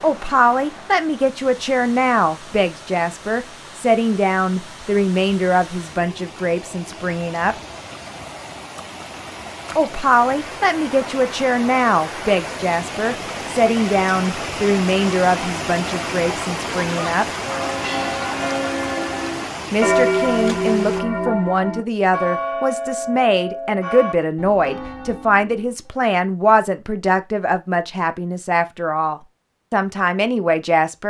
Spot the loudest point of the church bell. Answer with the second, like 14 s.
20 s.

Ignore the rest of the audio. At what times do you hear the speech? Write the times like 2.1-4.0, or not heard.
0.0-7.5, 9.8-17.2, 19.7-31.0.